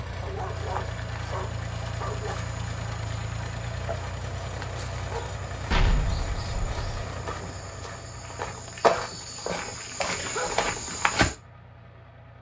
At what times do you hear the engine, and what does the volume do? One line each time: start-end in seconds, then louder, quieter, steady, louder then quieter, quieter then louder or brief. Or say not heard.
0.0-12.3 quieter.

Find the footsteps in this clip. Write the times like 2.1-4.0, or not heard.
0.5-11.3.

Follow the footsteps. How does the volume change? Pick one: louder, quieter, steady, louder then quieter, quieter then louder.
louder.